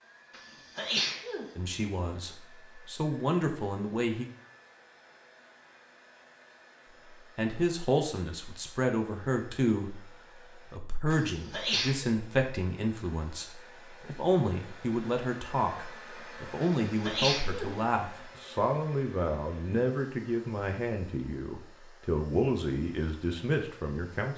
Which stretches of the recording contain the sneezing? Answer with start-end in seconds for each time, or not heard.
0.3-1.4, 11.1-12.1, 16.6-17.8.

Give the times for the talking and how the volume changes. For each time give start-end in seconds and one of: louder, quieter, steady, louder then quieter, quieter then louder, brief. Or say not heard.
1.6-4.2 brief
7.3-24.3 steady.